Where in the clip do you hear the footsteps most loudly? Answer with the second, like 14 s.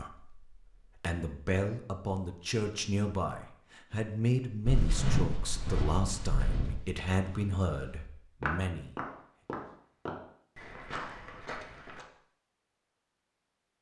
5 s.